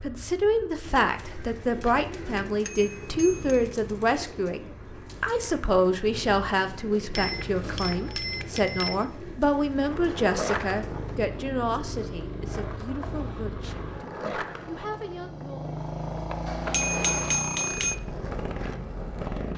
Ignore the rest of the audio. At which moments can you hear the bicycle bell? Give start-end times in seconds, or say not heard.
2.6-3.6, 7.1-9.1, 16.4-17.9.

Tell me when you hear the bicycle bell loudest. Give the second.
17 s.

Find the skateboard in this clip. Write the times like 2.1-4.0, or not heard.
9.7-19.5.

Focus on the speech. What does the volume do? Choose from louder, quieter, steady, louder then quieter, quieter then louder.
quieter.